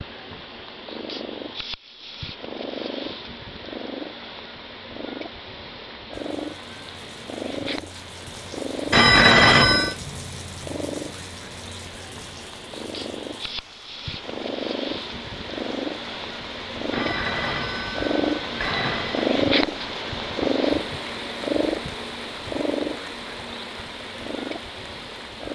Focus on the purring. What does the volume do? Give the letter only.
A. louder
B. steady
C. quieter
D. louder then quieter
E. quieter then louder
A.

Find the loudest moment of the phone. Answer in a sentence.
The loudest moment of the phone is at 9 seconds.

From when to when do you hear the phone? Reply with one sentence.
You can hear the phone from 8.9 to 9.9 s and from 16.9 to 19.3 s.